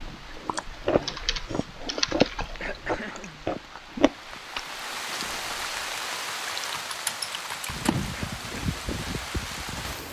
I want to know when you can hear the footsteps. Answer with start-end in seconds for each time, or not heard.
not heard.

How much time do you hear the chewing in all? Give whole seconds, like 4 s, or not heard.
6 s.